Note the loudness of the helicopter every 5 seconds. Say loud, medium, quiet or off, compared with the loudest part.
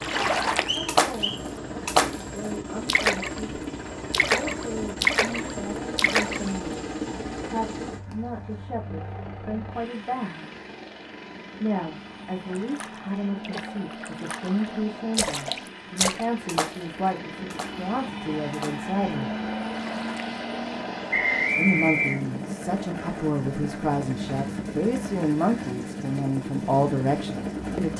loud, loud, medium, loud, loud, loud.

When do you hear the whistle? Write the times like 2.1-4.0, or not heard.
0.7-1.4, 21.1-22.2.